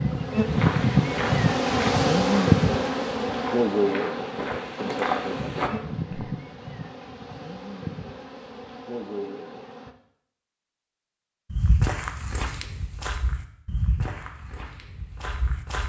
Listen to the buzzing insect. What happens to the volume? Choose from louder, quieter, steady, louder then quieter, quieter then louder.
quieter.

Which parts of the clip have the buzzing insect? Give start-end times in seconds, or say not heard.
0.0-9.9.